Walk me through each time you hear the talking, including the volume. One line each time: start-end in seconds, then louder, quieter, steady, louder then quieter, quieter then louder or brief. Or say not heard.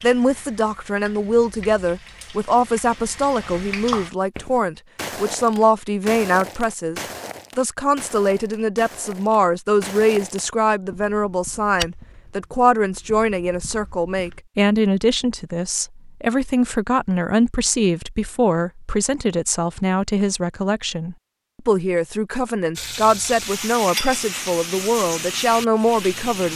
0.0-26.5 steady.